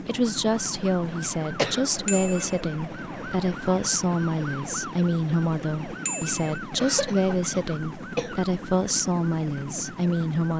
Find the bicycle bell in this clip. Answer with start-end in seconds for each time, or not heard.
2.0-2.6, 6.0-6.6.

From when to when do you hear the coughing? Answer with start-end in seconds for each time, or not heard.
1.6-2.0, 6.8-8.3.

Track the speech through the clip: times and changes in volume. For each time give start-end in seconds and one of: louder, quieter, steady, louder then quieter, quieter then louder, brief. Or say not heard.
0.1-10.5 steady.